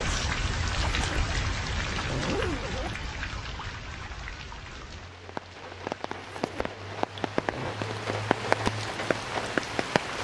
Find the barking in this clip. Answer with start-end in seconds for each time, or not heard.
not heard.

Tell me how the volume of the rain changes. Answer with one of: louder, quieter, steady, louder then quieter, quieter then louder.
quieter then louder.